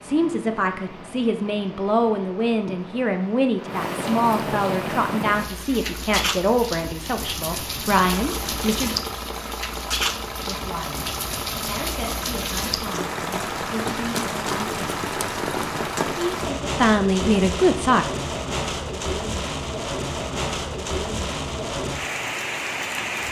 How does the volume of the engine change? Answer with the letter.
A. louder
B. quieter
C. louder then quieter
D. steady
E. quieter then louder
D.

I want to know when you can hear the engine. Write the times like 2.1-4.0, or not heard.
8.1-16.5.